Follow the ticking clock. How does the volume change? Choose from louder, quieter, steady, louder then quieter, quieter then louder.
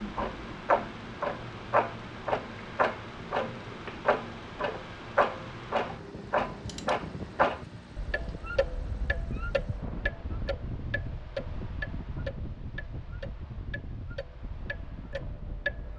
quieter.